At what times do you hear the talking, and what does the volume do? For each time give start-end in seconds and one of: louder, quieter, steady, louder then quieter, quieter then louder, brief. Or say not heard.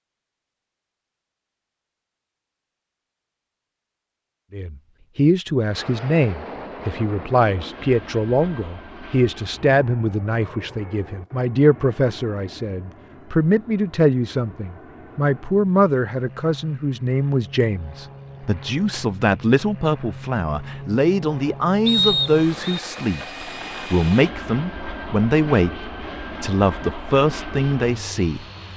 4.5-28.4 steady.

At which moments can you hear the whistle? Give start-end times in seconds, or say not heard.
21.9-22.8.